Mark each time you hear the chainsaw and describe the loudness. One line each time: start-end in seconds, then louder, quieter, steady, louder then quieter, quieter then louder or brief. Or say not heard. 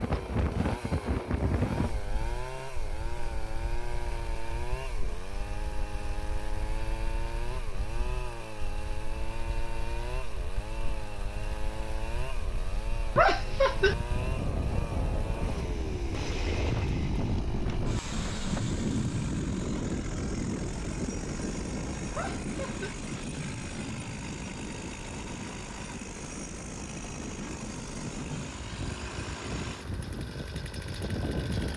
0.0-31.7 steady.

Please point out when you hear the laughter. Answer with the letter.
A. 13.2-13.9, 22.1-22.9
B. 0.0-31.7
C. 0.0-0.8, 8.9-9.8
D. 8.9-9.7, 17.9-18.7
A.